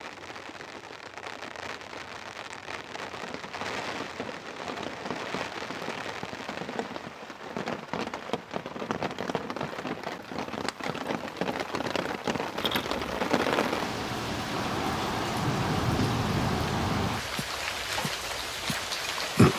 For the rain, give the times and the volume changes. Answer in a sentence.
The rain can be heard from 0.0 to 19.5 s, getting louder.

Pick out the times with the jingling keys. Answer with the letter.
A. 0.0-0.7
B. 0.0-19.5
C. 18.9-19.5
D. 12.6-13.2
D.